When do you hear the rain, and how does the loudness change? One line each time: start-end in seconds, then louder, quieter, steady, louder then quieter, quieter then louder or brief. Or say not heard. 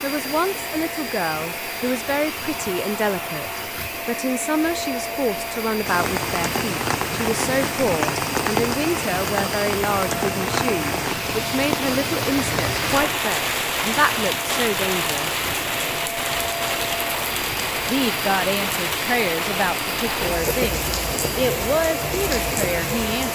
5.8-23.3 steady.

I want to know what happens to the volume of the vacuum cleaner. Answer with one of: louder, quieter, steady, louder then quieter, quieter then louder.
steady.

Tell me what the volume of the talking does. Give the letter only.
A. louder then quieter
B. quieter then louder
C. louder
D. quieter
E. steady
E.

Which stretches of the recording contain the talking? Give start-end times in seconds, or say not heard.
0.0-15.3, 17.9-23.3.